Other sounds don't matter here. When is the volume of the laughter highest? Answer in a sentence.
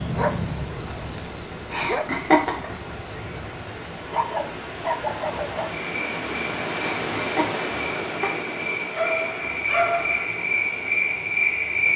The loudest moment of the laughter is at 2 seconds.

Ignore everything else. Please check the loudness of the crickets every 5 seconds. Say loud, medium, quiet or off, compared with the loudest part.
loud, medium, loud.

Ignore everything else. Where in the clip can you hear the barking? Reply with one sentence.
You can hear the barking from 0.1 to 2.0 s, from 4.0 to 5.8 s and from 8.9 to 10.4 s.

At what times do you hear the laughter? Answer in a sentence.
The laughter can be heard from 1.7 to 2.8 s and from 6.8 to 8.3 s.